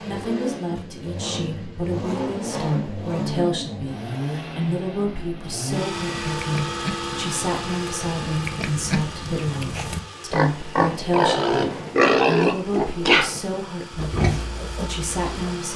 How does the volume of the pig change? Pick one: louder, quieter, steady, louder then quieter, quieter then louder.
louder then quieter.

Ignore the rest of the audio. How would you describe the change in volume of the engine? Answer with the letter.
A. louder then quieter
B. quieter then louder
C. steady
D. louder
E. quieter
E.